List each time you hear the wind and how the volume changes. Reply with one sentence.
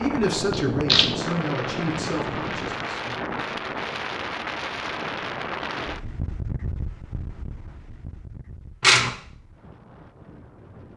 The wind can be heard from 0.0 to 10.9 s, getting quieter.